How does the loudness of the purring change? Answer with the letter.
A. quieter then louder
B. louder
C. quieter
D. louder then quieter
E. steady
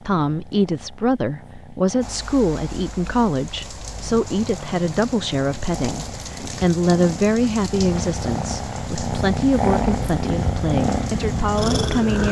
B.